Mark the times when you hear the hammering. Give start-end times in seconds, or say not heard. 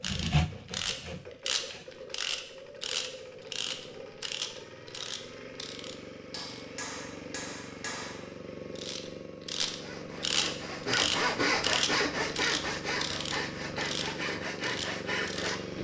6.3-8.3.